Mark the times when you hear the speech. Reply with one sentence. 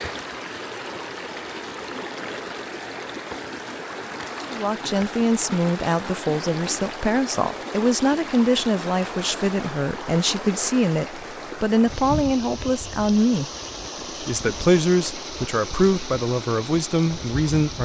The speech can be heard from 4.5 to 13.4 s and from 14.2 to 17.8 s.